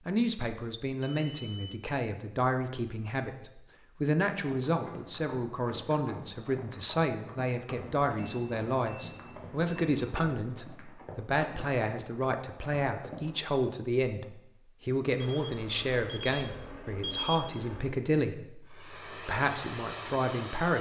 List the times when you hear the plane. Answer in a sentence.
You can hear the plane from 18.6 to 20.7 s.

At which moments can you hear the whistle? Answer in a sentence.
You can't hear the whistle here.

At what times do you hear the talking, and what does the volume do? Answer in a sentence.
The talking can be heard from 0.1 to 20.7 s, at a steady volume.